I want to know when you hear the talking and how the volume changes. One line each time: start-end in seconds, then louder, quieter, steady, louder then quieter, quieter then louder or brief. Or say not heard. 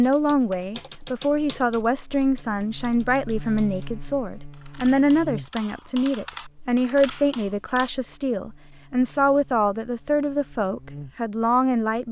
0.0-12.0 steady.